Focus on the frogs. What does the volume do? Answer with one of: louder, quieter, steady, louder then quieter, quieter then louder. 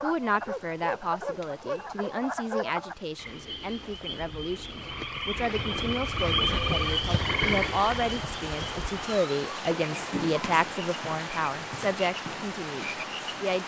louder then quieter.